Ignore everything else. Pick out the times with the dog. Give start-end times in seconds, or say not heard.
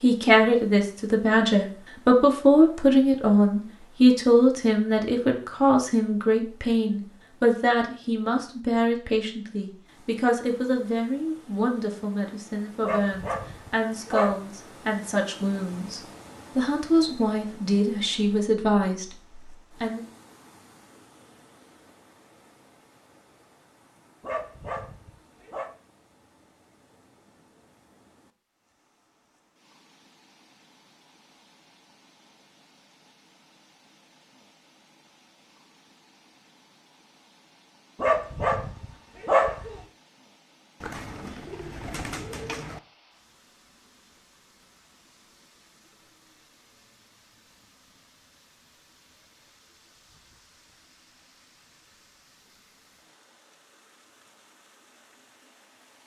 12.8-14.3, 24.2-25.7, 38.0-39.8.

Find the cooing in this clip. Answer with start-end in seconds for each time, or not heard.
40.8-42.8.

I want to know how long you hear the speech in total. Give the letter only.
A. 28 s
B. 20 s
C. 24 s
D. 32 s
B.